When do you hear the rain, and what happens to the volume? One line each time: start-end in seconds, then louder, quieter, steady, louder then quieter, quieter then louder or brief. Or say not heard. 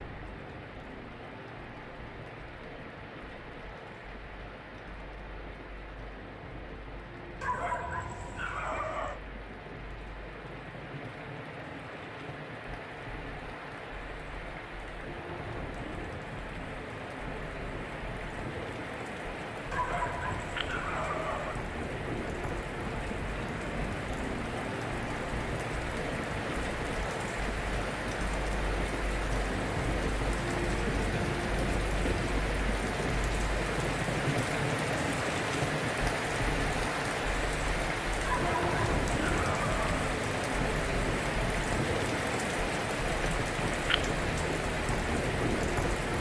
0.0-46.1 louder.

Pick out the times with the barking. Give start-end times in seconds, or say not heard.
7.4-9.2, 19.7-21.6, 38.2-40.0.